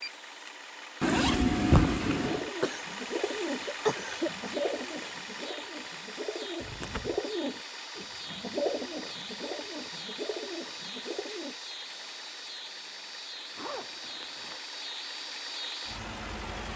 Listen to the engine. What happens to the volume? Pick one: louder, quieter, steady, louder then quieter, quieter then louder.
steady.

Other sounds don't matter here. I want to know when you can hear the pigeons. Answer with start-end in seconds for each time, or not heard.
2.2-11.6.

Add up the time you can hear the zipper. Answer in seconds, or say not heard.
3 s.